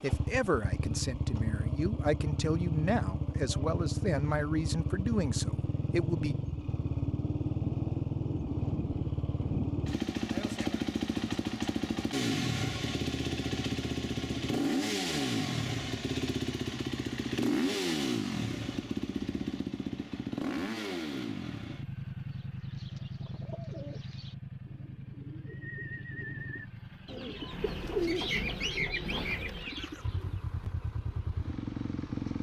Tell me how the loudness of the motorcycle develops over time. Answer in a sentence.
The volume of the motorcycle goes down.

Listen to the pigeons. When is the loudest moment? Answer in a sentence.
The volume of the pigeons peaks at 28 seconds.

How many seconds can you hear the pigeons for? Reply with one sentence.
You can hear the pigeons for 8 seconds altogether.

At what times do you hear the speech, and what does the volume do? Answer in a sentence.
The speech can be heard from 0.0 to 6.3 s, at a steady volume.